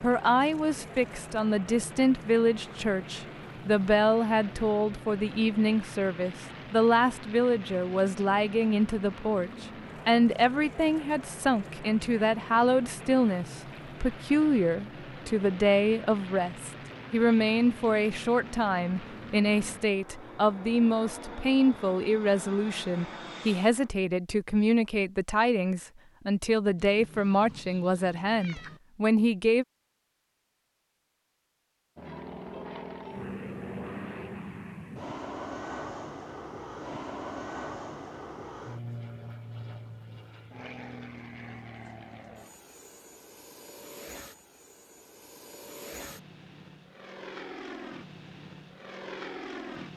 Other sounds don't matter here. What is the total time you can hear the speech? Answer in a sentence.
The speech can be heard for 30 seconds in total.